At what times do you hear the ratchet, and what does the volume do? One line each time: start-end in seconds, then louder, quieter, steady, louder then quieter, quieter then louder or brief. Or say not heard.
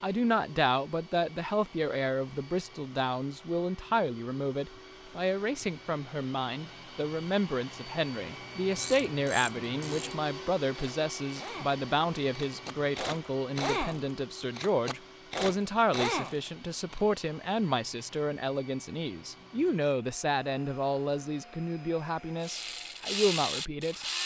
8.8-17.0 louder
22.4-24.2 brief.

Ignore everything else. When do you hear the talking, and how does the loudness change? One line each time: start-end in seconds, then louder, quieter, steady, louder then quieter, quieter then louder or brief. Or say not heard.
0.0-24.1 steady.